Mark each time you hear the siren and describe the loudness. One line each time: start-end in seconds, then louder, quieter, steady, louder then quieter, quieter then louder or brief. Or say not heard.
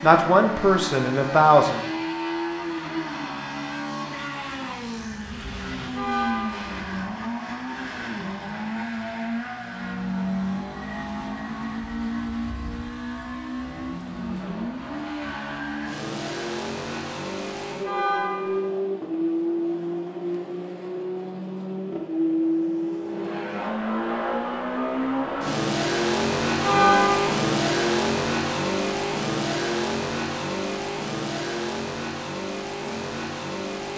not heard.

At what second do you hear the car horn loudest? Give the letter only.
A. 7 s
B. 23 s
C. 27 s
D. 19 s
C.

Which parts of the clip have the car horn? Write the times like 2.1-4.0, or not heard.
5.9-6.8, 17.8-18.7, 26.6-27.3.